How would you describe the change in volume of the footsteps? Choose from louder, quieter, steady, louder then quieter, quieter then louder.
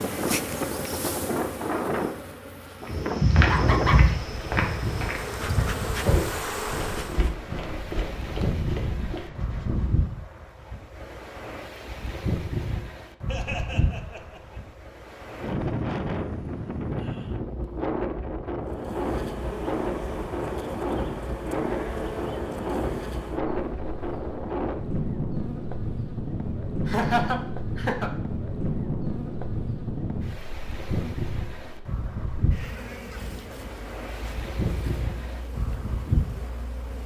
quieter.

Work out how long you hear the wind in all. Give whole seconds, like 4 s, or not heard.
37 s.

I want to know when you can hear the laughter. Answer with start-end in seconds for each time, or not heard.
3.5-4.0, 13.2-14.6, 26.9-28.1.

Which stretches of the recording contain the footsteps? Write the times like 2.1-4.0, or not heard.
2.9-10.2.